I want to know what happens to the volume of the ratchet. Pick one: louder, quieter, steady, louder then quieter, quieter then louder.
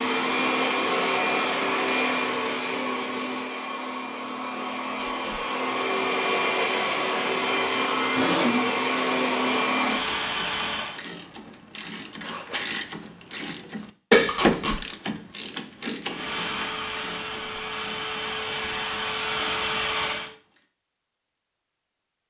louder then quieter.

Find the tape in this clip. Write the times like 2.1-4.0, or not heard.
4.9-5.4, 14.2-14.8.